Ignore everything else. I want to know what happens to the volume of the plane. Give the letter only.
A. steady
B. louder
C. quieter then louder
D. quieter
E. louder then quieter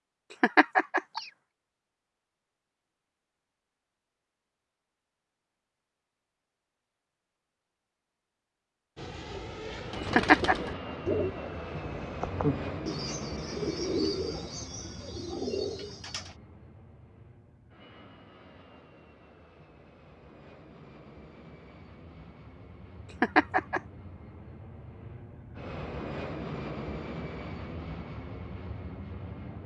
C.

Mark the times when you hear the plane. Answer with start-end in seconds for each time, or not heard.
8.9-29.6.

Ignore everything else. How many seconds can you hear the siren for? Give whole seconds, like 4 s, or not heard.
not heard.